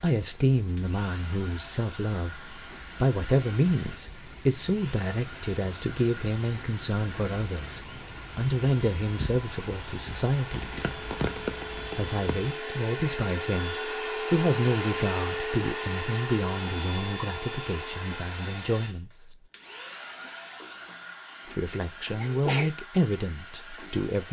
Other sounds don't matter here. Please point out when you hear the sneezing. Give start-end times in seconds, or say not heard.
21.7-22.7.